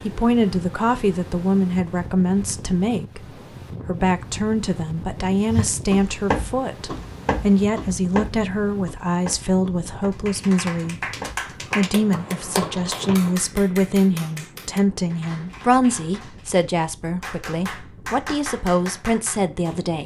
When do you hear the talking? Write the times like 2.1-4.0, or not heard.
0.0-3.2, 3.9-11.0, 11.8-20.0.